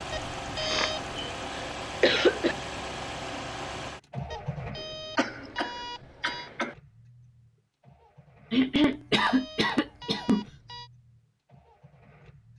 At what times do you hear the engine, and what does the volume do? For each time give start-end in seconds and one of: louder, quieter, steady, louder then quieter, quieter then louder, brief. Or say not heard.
0.0-12.5 quieter.